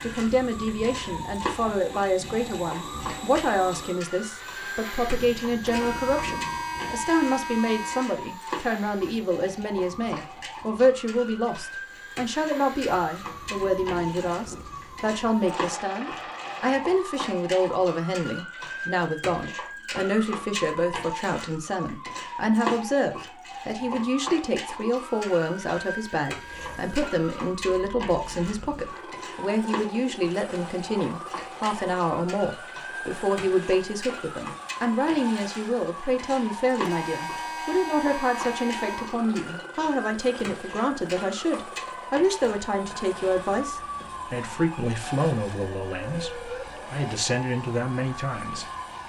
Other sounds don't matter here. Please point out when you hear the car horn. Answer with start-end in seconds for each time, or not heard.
5.6-8.2, 24.9-27.6, 36.8-39.1.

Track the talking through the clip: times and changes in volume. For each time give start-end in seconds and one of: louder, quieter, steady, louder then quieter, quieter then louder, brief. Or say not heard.
0.0-49.0 steady.